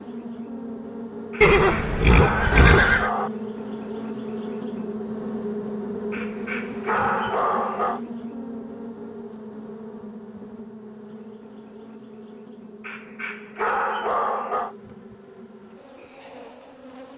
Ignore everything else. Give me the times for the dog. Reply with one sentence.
You can hear the dog from 1.3 to 3.3 s, from 6.1 to 8.0 s and from 12.8 to 14.8 s.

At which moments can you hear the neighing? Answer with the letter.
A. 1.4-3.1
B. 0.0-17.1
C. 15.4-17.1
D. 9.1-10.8
A.